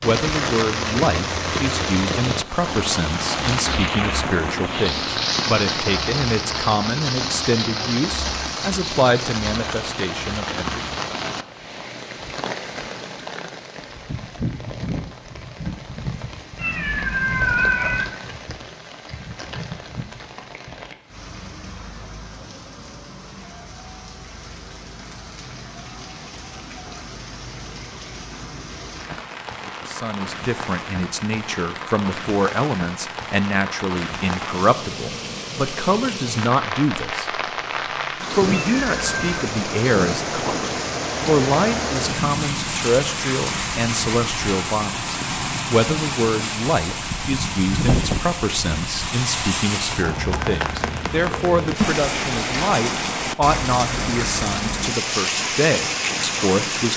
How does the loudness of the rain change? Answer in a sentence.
The loudness of the rain goes down, then up.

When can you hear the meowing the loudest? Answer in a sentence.
The loudest moment of the meowing is at 18 seconds.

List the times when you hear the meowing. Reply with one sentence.
You can hear the meowing from 16.6 to 18.1 s and from 38.8 to 39.4 s.